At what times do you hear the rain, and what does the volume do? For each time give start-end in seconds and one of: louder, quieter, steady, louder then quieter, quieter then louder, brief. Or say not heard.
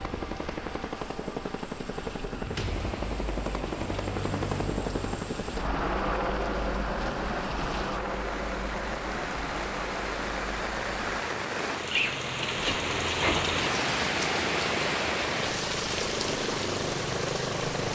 0.0-17.9 louder.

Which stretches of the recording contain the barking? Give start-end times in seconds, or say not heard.
not heard.